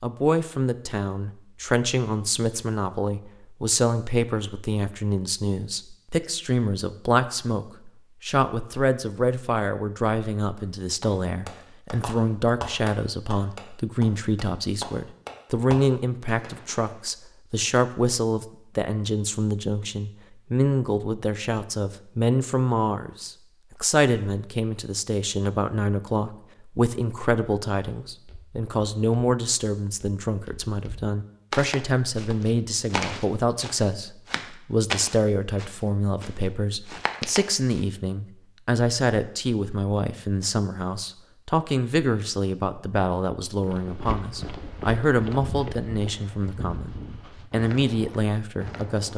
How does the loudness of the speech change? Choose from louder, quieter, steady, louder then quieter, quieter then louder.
steady.